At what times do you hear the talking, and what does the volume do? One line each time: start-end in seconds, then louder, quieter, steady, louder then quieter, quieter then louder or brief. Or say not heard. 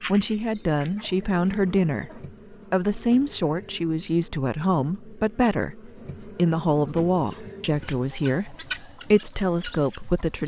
0.1-10.4 steady.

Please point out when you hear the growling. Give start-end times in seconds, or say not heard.
not heard.